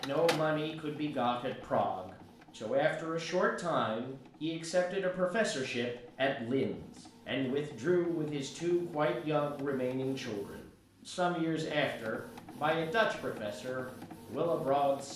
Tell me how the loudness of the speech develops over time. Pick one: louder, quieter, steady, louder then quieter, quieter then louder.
steady.